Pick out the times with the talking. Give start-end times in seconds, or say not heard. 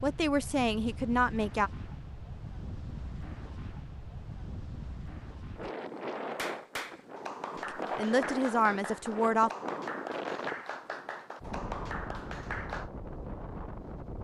0.0-1.7, 7.5-9.5.